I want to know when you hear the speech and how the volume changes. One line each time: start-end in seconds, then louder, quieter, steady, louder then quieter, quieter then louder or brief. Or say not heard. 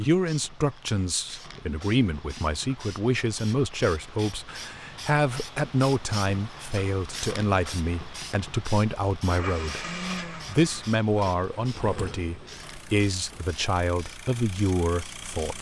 0.0-15.5 steady.